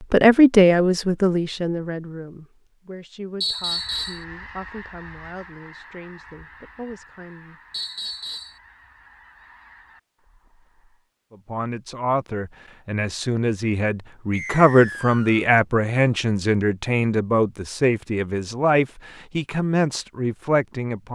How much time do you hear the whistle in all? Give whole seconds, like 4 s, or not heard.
3 s.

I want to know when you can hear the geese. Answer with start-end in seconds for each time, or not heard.
3.5-11.1.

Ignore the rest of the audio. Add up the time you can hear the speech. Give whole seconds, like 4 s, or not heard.
17 s.